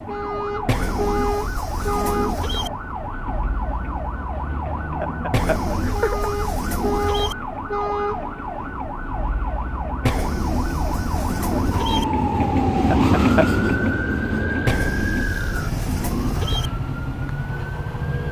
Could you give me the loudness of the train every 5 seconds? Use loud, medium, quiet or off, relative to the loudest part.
quiet, quiet, loud, quiet.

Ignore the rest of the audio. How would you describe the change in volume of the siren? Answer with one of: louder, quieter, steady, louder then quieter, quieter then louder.
steady.